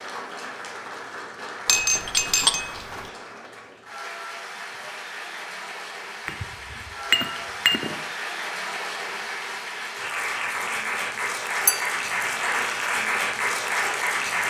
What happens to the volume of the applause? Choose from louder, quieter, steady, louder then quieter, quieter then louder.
louder.